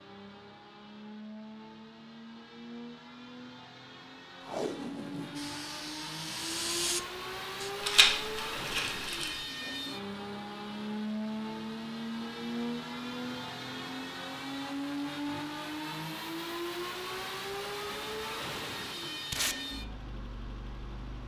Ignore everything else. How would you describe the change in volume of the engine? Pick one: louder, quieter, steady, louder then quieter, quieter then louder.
louder.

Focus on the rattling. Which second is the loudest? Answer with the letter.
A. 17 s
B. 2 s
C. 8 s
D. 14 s
C.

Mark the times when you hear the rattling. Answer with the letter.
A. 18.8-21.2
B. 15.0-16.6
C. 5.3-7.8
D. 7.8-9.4
D.